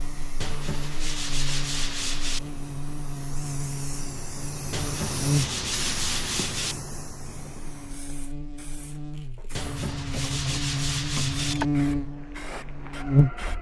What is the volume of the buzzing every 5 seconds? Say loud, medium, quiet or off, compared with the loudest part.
medium, medium, loud.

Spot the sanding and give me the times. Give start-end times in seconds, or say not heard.
0.4-2.4, 4.7-6.8, 9.6-11.6.